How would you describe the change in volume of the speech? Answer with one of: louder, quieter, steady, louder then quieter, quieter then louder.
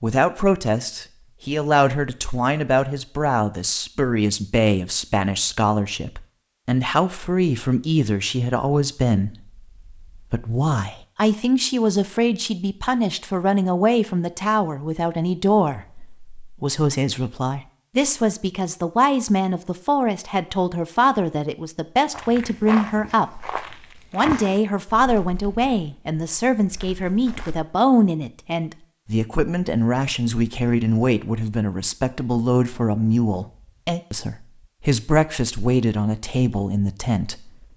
steady.